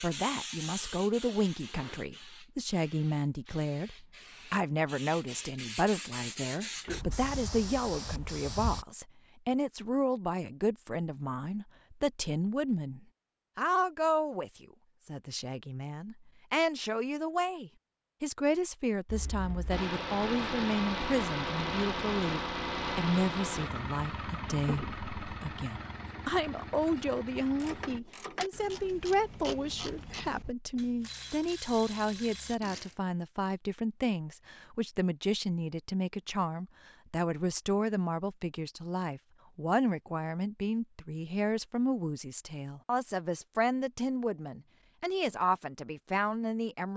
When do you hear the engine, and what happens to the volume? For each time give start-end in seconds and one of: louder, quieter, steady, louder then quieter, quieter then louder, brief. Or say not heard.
19.1-28.0 quieter.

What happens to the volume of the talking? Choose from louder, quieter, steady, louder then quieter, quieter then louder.
steady.